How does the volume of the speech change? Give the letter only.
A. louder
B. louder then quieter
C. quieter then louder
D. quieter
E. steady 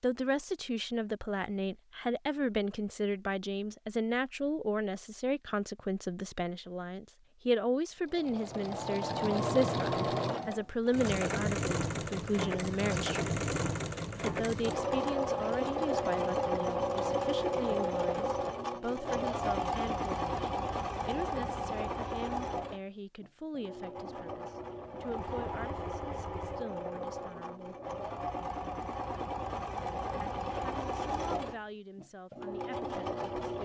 D.